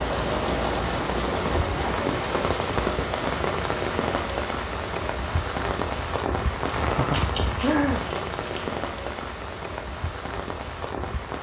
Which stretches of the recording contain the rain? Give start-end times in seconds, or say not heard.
0.0-11.3.